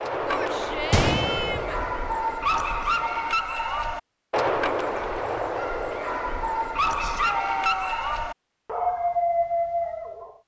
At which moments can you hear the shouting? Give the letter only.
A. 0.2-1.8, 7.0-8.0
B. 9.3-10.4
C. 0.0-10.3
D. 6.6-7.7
A.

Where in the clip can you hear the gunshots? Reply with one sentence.
The gunshots can be heard from 0.9 to 1.9 s.